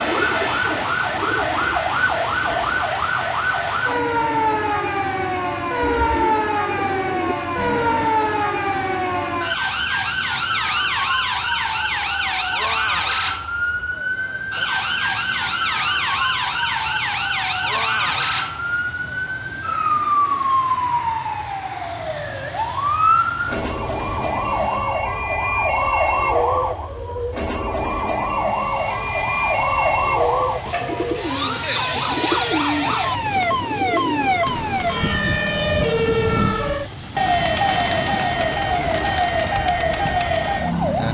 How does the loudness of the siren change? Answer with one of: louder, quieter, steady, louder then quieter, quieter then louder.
steady.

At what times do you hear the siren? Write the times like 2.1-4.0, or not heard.
0.0-41.0.